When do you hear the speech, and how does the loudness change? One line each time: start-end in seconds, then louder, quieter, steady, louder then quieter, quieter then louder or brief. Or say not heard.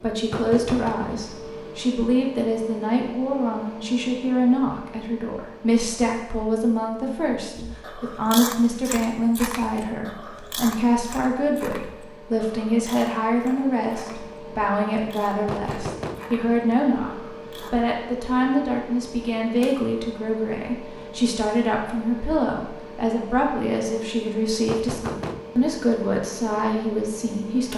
0.0-27.7 steady.